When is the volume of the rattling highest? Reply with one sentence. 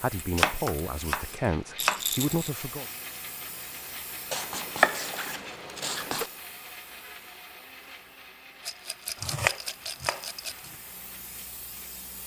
The volume of the rattling peaks at 2 seconds.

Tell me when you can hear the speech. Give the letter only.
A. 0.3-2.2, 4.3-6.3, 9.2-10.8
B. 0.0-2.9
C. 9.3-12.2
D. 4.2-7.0
B.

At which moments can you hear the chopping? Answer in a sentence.
The chopping can be heard from 0.3 to 2.2 s, from 4.3 to 6.3 s and from 9.2 to 10.8 s.